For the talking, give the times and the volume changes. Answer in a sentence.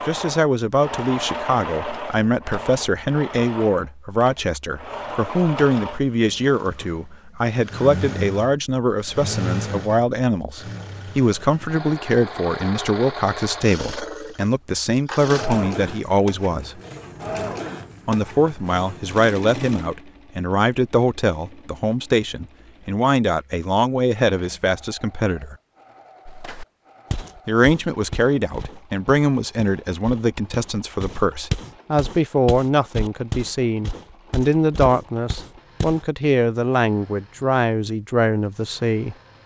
You can hear the talking from 0.1 to 16.8 s, at a steady volume; from 18.1 to 25.6 s, at a steady volume; and from 27.4 to 39.1 s, at a steady volume.